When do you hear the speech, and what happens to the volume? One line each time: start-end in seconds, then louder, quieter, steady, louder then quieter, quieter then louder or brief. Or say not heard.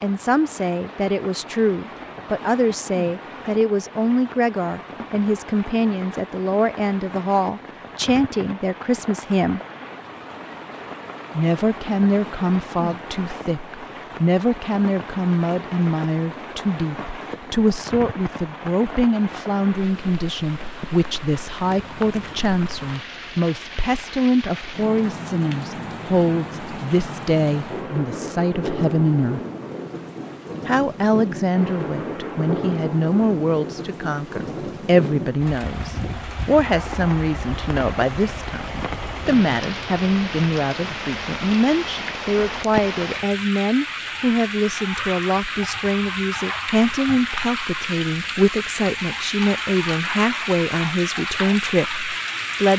0.0-9.6 steady
11.3-29.4 steady
30.6-52.7 steady.